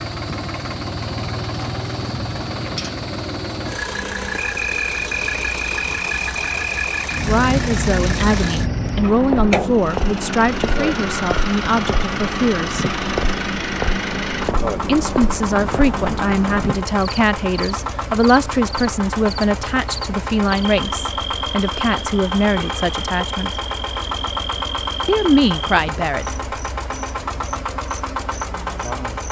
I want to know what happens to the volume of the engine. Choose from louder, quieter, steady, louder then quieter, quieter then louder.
steady.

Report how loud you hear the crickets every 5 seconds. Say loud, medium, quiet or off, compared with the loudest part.
medium, loud, loud, medium, medium, medium.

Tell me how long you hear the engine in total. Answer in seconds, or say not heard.
29 s.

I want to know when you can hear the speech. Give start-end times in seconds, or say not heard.
7.2-12.8, 14.8-23.6, 25.1-26.3.